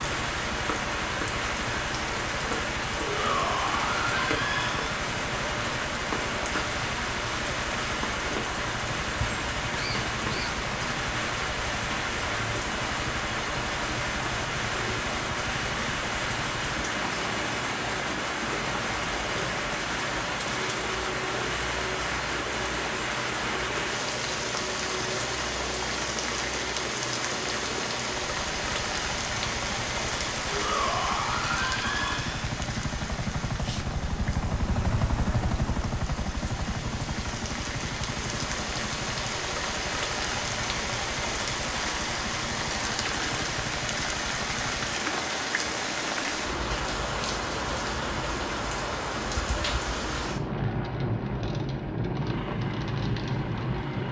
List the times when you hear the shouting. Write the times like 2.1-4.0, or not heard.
3.0-4.8, 30.5-32.5.